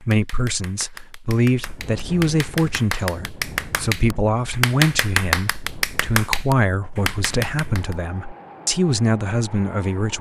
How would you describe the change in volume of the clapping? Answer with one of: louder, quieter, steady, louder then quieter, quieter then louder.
louder.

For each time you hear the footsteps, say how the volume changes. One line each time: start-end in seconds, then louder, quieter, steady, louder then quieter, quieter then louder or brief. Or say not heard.
not heard.